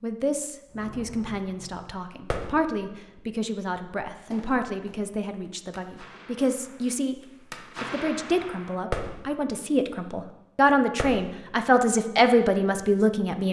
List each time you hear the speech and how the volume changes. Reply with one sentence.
You can hear the speech from 0.0 to 7.2 s, at a steady volume; and from 7.8 to 13.4 s, getting louder.